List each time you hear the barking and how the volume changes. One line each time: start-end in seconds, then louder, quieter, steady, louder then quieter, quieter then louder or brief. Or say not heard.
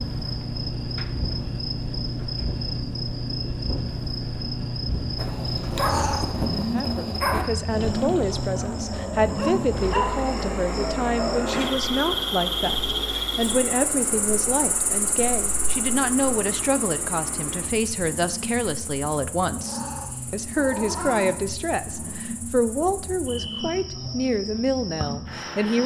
5.2-10.3 quieter then louder.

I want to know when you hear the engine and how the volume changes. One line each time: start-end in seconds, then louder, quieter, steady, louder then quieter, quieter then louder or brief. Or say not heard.
0.0-25.8 quieter.